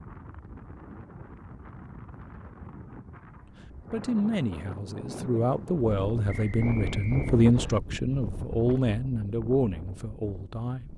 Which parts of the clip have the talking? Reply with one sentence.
The talking can be heard from 3.9 to 10.9 s.